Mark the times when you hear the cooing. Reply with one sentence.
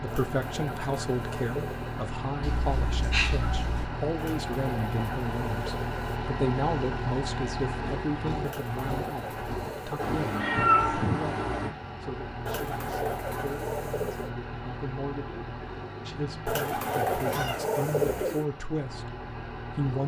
You can hear the cooing from 0.1 to 2.0 s, from 4.2 to 6.2 s, from 8.4 to 10.3 s, from 12.4 to 14.3 s and from 16.4 to 18.4 s.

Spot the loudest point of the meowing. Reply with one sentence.
The volume of the meowing peaks at 11 seconds.